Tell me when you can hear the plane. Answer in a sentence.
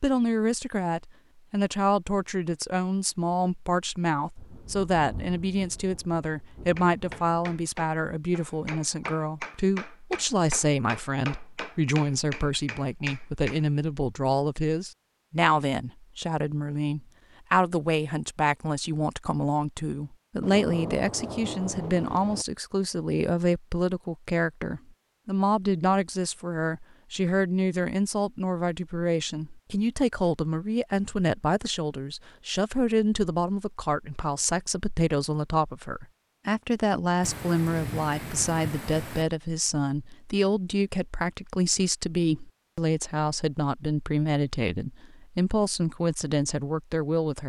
You can't hear the plane here.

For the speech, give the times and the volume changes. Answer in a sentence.
The speech can be heard from 0.0 to 47.4 s, at a steady volume.